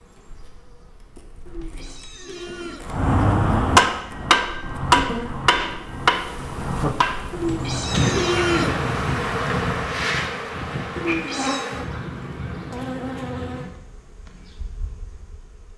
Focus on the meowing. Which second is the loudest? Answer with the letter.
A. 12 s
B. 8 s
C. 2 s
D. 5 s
B.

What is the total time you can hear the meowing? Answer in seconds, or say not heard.
4 s.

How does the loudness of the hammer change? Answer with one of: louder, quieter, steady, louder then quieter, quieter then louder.
quieter.